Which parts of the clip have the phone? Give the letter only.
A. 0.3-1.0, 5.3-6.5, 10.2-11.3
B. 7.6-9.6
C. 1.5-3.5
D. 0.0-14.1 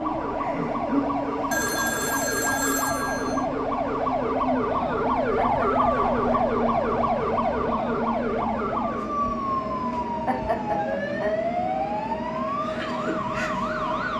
C.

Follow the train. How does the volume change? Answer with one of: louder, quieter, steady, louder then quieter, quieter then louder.
steady.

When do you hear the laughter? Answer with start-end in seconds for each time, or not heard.
0.3-1.0, 5.3-6.5, 10.2-11.3.